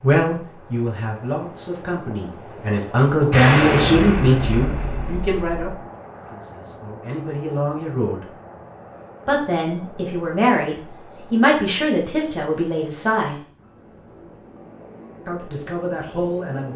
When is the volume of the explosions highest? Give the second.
4 s.